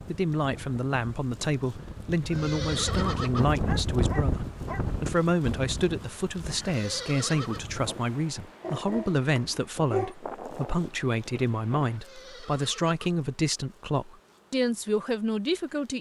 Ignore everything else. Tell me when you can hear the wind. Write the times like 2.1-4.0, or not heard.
0.0-12.0.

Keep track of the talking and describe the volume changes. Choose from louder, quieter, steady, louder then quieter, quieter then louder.
steady.